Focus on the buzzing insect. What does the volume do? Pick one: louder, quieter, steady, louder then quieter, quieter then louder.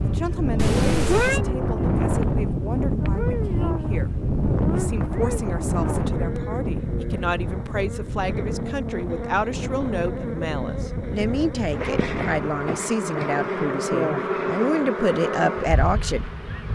louder.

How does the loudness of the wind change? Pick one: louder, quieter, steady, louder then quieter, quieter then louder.
quieter.